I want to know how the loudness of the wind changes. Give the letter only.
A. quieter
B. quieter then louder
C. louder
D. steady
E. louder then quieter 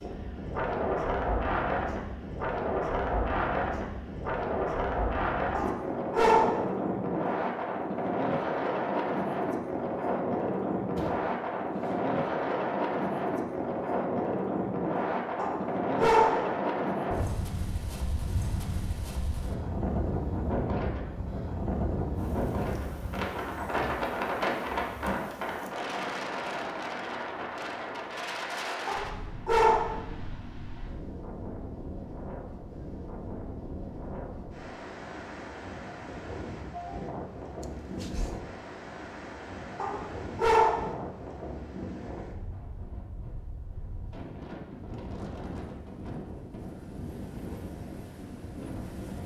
A.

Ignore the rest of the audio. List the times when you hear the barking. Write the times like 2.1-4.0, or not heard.
5.5-6.7, 15.3-16.5, 28.9-30.0, 39.8-40.9.